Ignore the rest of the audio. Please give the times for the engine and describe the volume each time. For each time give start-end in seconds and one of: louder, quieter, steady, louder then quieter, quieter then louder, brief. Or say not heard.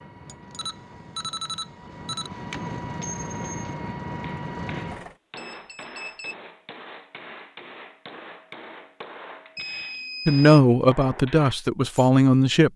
0.0-5.2 louder.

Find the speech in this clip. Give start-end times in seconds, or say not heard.
10.2-12.7.